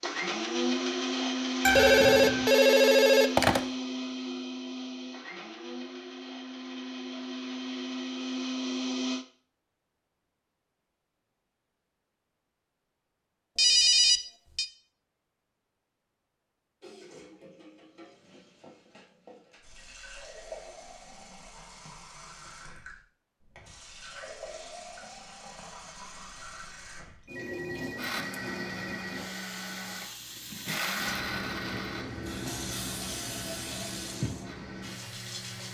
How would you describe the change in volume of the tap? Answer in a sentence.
The volume of the tap goes up.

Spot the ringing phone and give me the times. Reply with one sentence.
You can hear the ringing phone from 1.6 to 3.6 s, from 13.6 to 14.7 s and from 27.2 to 29.0 s.